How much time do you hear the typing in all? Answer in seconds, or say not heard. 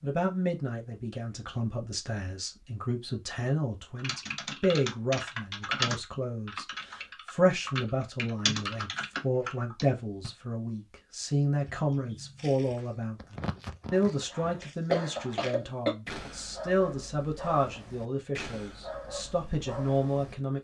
6 s.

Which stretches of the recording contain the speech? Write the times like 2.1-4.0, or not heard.
0.0-20.5.